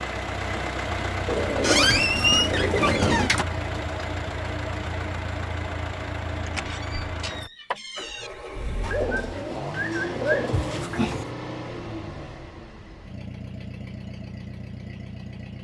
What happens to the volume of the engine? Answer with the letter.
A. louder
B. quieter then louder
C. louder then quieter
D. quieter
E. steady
D.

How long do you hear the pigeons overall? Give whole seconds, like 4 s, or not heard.
4 s.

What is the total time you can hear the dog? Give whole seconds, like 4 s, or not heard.
not heard.